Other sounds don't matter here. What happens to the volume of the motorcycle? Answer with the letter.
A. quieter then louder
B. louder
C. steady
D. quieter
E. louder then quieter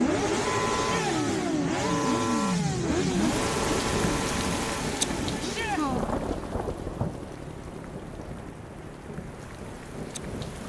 D.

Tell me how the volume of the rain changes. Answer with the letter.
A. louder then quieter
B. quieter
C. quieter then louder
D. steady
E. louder
B.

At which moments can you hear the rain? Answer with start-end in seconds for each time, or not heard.
3.1-10.6.